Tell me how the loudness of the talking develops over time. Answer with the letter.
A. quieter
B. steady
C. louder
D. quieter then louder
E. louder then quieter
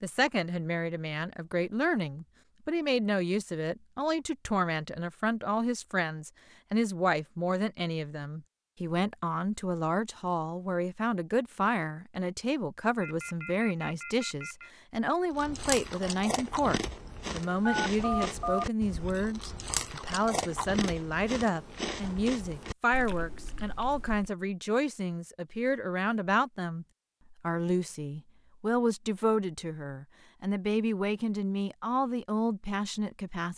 B.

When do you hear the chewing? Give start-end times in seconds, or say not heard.
15.3-24.3.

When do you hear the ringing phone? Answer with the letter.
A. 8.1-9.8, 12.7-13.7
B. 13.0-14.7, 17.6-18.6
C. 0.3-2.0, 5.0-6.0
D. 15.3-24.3
B.